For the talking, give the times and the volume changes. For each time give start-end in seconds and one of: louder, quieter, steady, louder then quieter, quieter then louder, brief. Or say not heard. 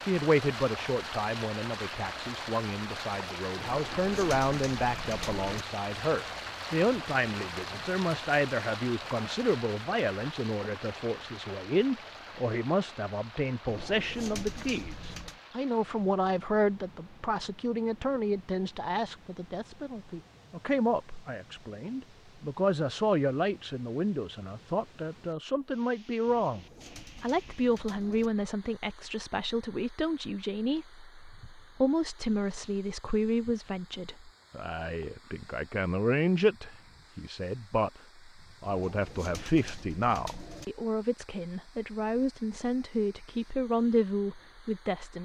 0.0-45.2 steady.